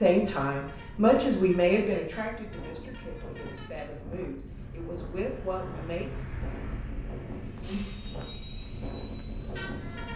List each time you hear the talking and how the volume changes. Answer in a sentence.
The talking can be heard from 0.0 to 6.1 s, getting quieter then louder.